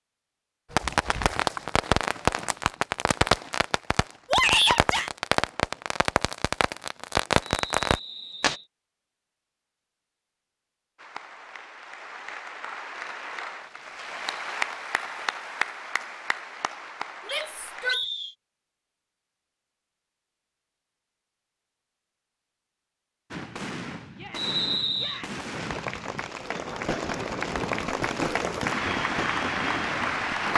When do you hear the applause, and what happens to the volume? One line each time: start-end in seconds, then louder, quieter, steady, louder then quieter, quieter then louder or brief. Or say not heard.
10.9-17.9 louder then quieter
25.6-30.5 louder.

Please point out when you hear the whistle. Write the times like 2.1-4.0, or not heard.
7.5-8.7, 17.2-18.4, 24.4-25.2.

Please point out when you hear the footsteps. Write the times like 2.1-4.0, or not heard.
not heard.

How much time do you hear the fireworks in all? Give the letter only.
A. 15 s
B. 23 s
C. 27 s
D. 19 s
A.